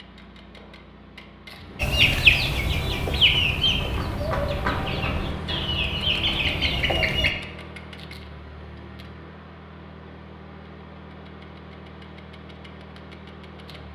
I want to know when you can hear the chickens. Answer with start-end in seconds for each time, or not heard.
1.8-7.3.